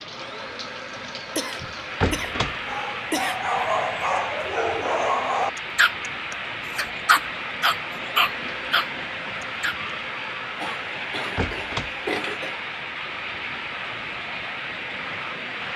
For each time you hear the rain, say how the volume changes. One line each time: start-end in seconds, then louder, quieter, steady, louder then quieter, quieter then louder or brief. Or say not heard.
0.0-15.7 steady.